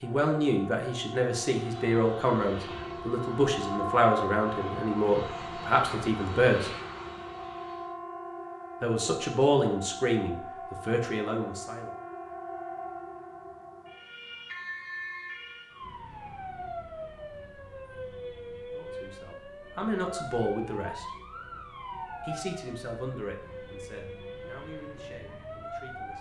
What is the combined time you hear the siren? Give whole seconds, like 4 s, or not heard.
26 s.